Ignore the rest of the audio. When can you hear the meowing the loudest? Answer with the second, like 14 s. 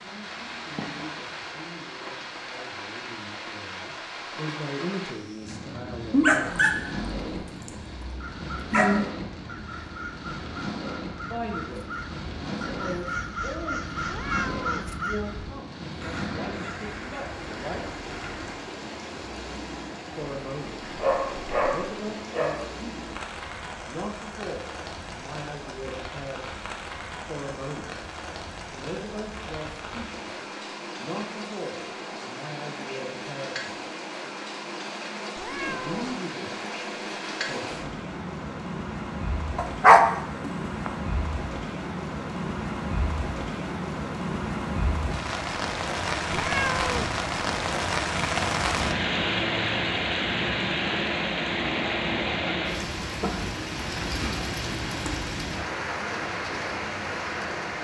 47 s.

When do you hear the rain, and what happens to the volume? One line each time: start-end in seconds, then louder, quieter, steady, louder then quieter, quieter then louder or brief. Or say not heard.
0.0-57.8 louder.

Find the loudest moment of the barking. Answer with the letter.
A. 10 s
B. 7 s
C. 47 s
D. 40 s
D.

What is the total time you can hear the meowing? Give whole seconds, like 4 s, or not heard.
2 s.